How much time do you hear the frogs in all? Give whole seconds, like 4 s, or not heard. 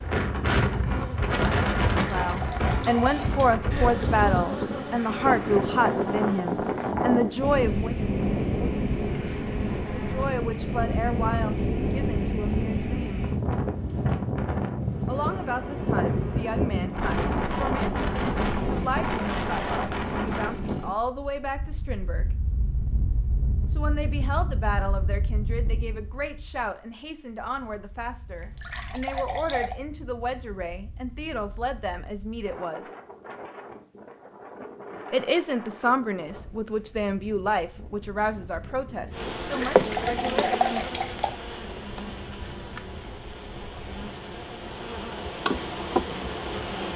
not heard.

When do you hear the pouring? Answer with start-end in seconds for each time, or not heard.
1.9-3.5, 28.4-29.8, 39.3-41.3.